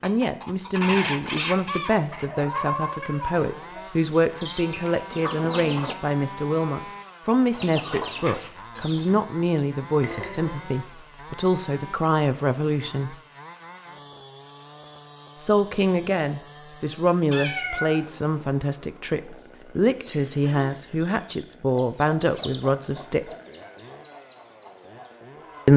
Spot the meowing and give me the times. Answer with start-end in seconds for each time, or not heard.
2.1-3.9, 10.0-10.7, 17.3-18.1.